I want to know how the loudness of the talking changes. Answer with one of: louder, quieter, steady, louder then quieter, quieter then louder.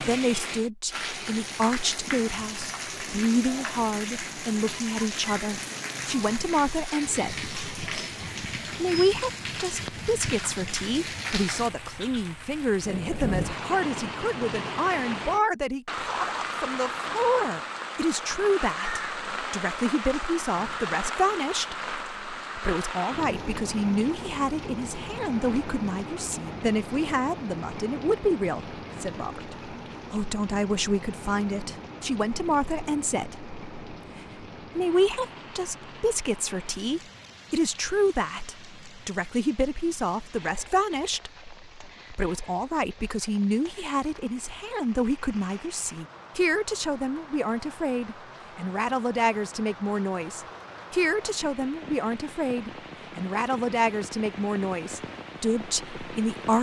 steady.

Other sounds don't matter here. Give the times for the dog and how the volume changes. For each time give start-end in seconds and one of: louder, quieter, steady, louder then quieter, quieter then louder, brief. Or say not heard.
not heard.